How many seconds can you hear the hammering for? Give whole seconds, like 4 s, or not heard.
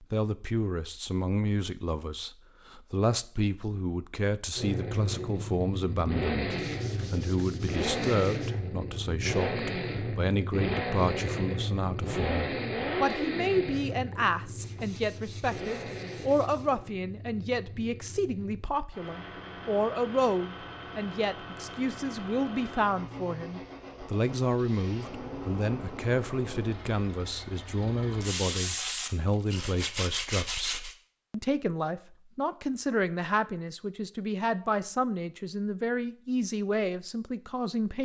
not heard.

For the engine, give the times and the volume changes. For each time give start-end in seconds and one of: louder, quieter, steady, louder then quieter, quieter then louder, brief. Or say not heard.
4.5-28.4 quieter.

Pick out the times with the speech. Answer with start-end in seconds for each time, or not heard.
0.0-38.0.